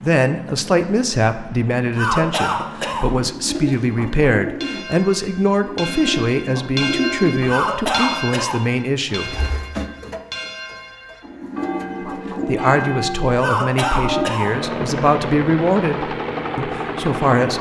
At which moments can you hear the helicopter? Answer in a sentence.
You can hear the helicopter from 0.0 to 3.4 s and from 14.3 to 17.5 s.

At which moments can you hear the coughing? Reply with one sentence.
The coughing can be heard from 1.9 to 3.0 s, from 7.5 to 8.6 s and from 13.3 to 14.5 s.